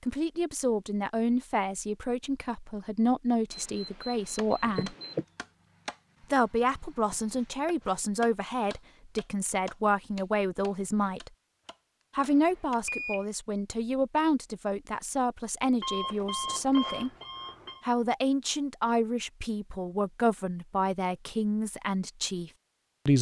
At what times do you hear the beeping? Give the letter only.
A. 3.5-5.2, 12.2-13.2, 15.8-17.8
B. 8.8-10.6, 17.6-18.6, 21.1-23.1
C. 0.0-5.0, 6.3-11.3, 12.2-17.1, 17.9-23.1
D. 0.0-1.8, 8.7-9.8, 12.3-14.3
A.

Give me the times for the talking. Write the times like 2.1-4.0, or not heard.
0.0-5.0, 6.3-11.3, 12.2-17.1, 17.9-23.1.